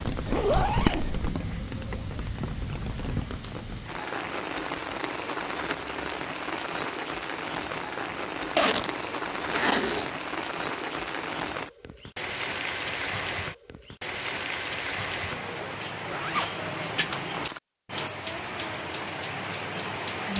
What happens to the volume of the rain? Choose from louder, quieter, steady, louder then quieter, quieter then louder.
steady.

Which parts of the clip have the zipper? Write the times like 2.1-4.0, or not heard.
0.1-1.4, 8.6-10.1, 16.1-17.6.